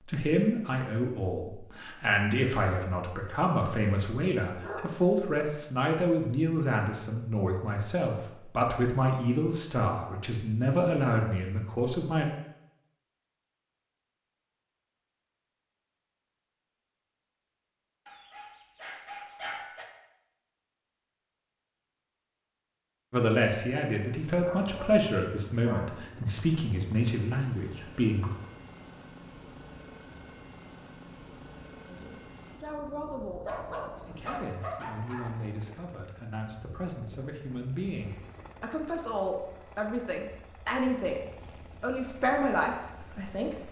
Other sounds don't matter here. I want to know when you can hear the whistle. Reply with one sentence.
The whistle can't be heard in this clip.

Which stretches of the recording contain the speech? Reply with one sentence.
You can hear the speech from 0.1 to 12.2 s, from 23.1 to 28.3 s and from 31.9 to 43.5 s.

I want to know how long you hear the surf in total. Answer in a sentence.
You can't hear the surf here.